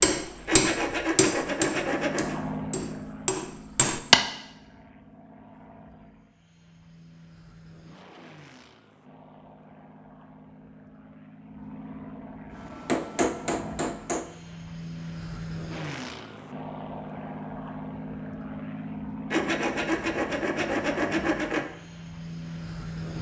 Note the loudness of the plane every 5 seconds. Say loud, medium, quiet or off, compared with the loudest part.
loud, quiet, medium, loud, loud.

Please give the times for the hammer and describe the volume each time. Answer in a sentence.
You can hear the hammer from 0.0 to 4.2 s, getting quieter then louder; and briefly from 12.6 to 14.3 s.